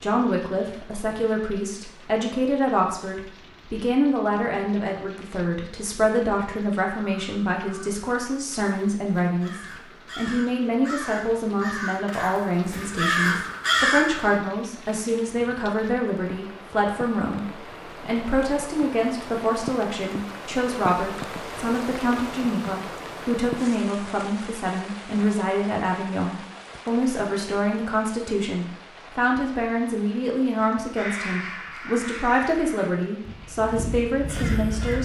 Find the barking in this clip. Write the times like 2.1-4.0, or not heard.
not heard.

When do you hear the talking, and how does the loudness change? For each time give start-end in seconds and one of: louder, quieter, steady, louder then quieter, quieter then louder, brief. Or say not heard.
0.0-34.9 steady.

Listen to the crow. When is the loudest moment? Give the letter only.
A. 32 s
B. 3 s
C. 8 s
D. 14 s
D.